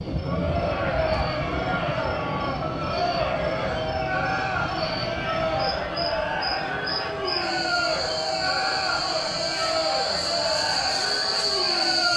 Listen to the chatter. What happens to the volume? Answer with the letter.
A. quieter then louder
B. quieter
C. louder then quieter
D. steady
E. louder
D.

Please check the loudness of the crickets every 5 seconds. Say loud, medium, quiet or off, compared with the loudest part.
quiet, medium, loud.